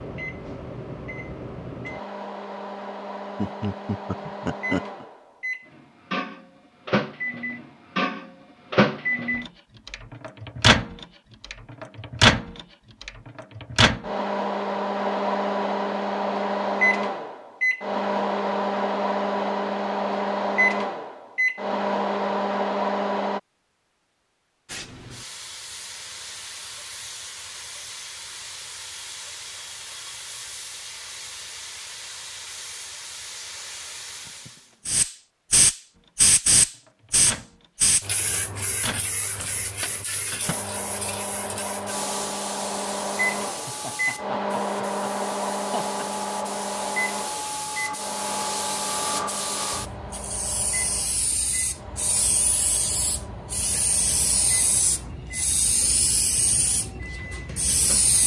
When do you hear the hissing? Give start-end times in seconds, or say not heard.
24.6-58.2.